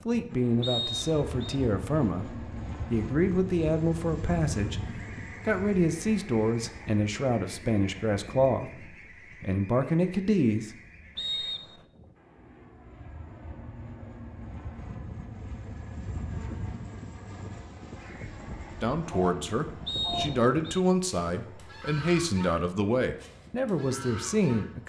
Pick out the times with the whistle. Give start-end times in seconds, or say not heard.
0.6-1.6, 11.2-11.8, 19.9-20.8.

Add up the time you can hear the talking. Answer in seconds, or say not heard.
17 s.